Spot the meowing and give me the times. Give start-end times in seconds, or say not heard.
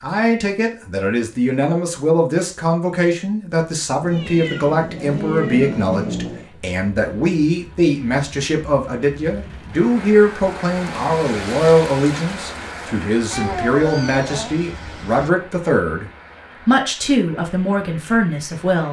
4.0-6.5, 13.3-15.3.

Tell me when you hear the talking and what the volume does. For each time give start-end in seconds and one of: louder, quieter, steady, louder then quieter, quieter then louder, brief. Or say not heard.
0.0-18.8 steady.